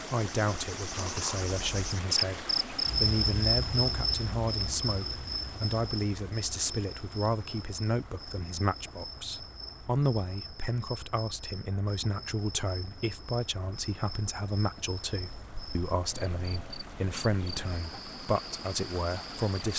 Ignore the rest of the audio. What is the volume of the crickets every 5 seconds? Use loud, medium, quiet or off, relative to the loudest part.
loud, medium, quiet, quiet.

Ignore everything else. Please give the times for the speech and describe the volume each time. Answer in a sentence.
The speech can be heard from 0.0 to 19.7 s, at a steady volume.